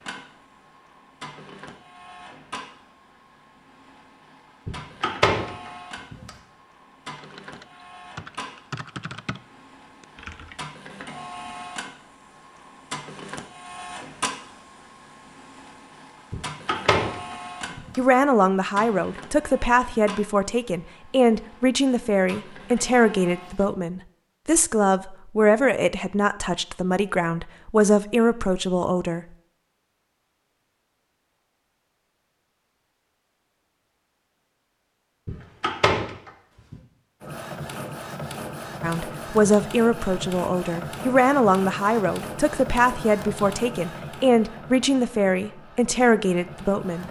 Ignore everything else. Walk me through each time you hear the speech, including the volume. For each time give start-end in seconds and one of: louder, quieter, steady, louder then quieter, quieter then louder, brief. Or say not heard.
17.9-29.2 steady
38.8-47.0 steady.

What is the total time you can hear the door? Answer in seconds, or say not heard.
5 s.